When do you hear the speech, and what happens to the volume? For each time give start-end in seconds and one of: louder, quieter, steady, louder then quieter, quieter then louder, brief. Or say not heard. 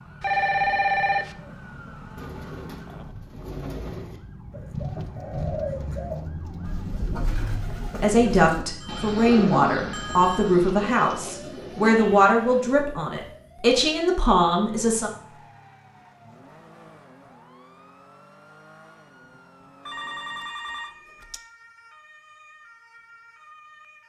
8.0-15.1 steady.